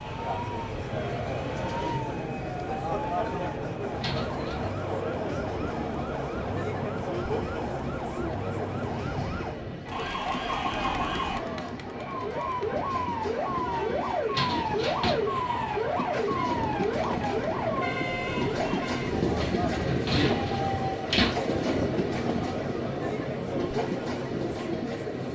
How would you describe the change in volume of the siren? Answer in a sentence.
The loudness of the siren goes up.